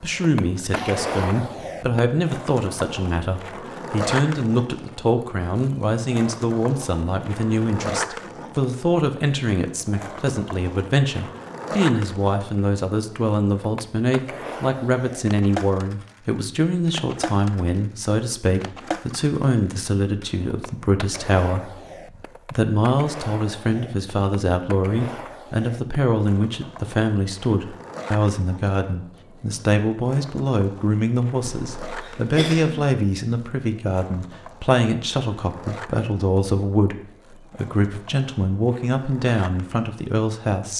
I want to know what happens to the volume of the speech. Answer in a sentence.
The volume of the speech stays about the same.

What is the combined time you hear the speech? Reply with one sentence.
You can hear the speech for 40 seconds altogether.